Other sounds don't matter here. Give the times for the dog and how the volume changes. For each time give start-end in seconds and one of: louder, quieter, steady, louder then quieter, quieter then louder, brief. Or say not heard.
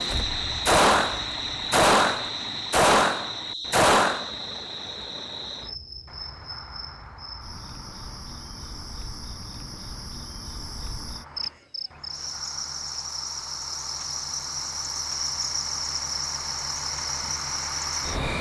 not heard.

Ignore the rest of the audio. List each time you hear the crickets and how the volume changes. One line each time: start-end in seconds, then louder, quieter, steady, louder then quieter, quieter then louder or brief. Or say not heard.
0.0-18.3 quieter then louder.